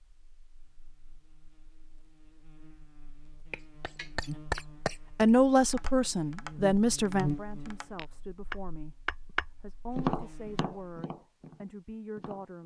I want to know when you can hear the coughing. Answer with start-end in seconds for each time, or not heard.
3.5-5.0.